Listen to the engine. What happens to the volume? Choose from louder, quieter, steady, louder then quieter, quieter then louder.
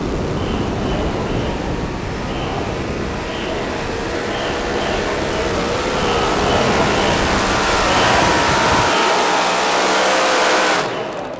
louder.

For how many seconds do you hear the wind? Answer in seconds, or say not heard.
9 s.